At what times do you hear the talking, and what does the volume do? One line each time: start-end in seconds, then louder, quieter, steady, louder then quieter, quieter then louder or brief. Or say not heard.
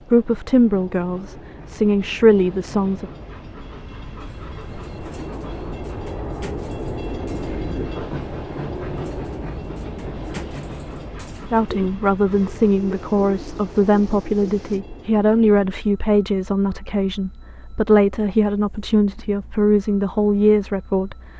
0.1-3.0 brief
11.5-21.1 steady.